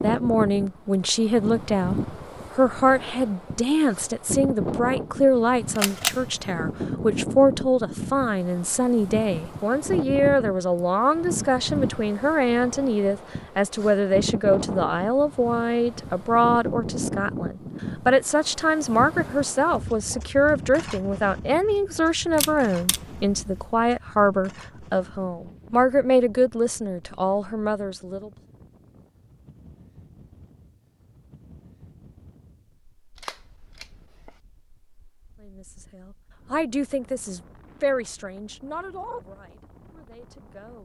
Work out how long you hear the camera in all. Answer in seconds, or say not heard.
3 s.